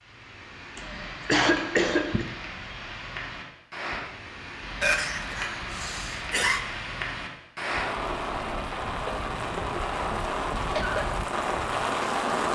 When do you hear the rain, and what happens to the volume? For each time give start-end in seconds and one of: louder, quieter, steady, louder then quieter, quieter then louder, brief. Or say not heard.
0.0-12.5 louder.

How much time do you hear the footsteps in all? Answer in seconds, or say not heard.
not heard.